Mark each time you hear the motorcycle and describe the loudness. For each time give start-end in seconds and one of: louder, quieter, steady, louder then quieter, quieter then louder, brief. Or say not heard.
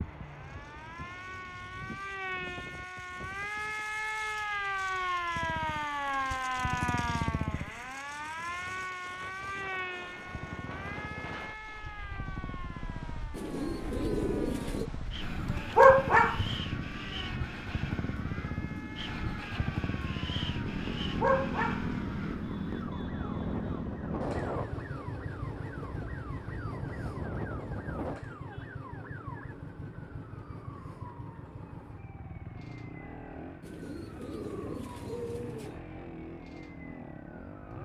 5.3-7.9 brief
10.2-37.8 louder then quieter.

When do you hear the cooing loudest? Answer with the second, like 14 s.
14 s.